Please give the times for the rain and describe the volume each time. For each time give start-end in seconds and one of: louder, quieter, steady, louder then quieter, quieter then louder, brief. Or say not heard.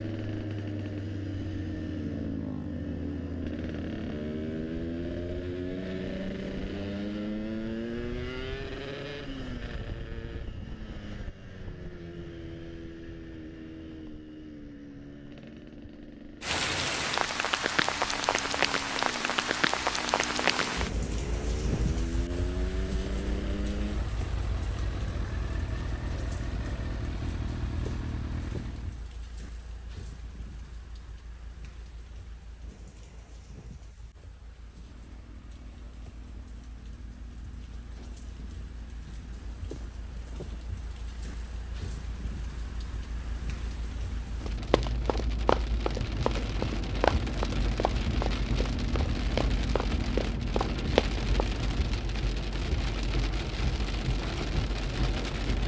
16.4-55.6 quieter then louder.